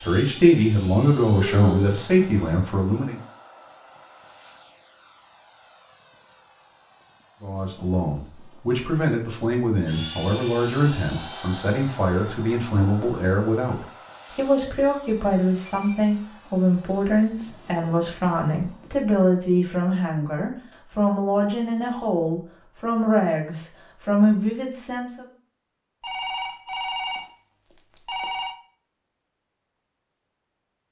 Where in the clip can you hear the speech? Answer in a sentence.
The speech can be heard from 0.0 to 3.1 s and from 7.4 to 25.2 s.